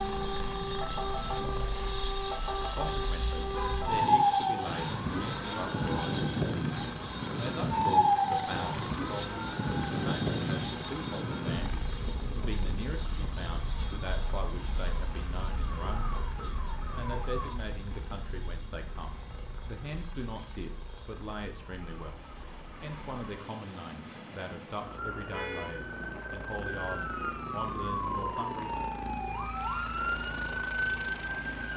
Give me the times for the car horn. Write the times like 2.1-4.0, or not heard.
3.5-4.0, 25.3-25.8.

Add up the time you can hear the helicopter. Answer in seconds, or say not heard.
32 s.